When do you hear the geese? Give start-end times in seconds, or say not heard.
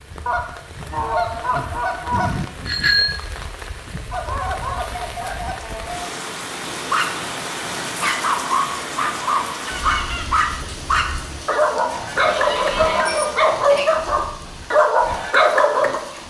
0.2-2.3, 4.1-6.2, 9.6-10.2, 12.2-13.8.